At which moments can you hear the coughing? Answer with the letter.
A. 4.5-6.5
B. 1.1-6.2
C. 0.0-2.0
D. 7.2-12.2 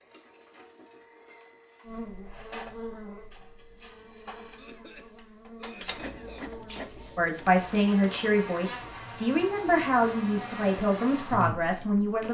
A.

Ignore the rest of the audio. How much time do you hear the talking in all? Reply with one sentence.
You can hear the talking for 5 seconds altogether.